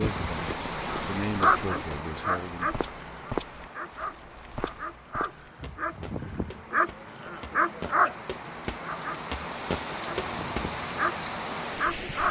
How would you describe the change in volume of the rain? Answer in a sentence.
The loudness of the rain goes down, then up.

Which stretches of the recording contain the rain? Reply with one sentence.
The rain can be heard from 0.0 to 12.2 s.